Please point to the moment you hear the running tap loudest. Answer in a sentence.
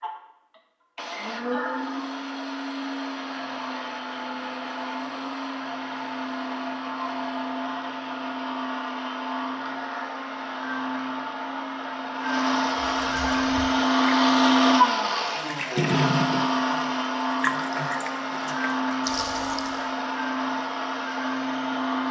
The loudest moment of the running tap is at 16 seconds.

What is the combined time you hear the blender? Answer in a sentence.
You can hear the blender for 22 seconds altogether.